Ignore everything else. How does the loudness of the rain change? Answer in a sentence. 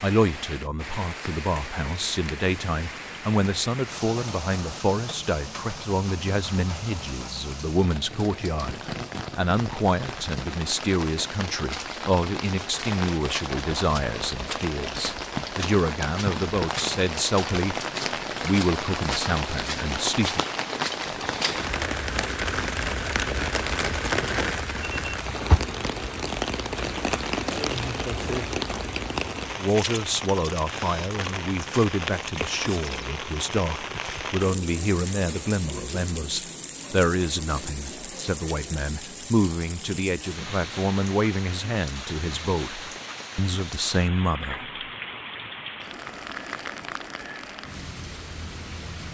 The loudness of the rain goes up, then down.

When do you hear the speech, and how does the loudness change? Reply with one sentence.
You can hear the speech from 0.0 to 20.4 s, at a steady volume; and from 29.6 to 44.7 s, at a steady volume.